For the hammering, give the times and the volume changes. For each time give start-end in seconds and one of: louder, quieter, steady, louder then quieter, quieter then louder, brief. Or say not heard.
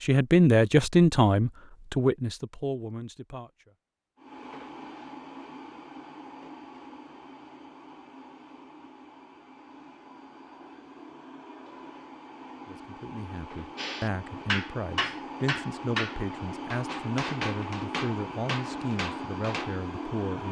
13.8-19.8 quieter.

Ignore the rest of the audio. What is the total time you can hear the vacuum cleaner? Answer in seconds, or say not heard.
16 s.